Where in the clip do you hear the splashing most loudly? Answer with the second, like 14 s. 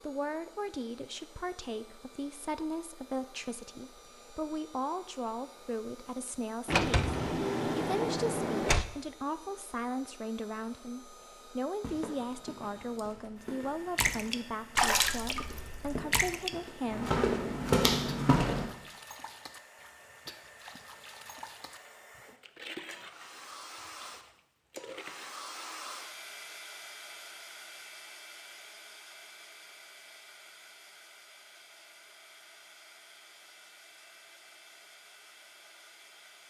15 s.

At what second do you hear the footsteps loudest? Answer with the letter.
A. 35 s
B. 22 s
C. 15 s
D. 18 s
D.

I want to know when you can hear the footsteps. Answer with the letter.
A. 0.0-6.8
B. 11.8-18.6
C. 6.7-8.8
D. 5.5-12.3
B.